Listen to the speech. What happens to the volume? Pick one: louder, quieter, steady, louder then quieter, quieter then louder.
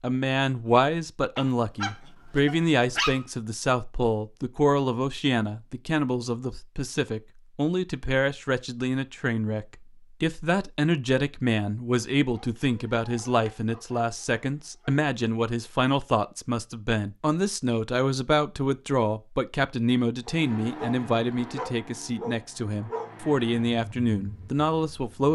steady.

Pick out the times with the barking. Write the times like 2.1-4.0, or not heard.
1.4-3.2, 12.3-14.9, 20.2-23.1.